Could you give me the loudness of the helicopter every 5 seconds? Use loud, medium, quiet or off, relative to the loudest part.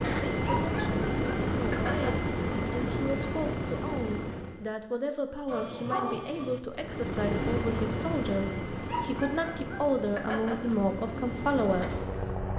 loud, loud, medium.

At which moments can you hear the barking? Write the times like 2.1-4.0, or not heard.
0.4-2.3, 5.5-6.6, 8.8-10.8.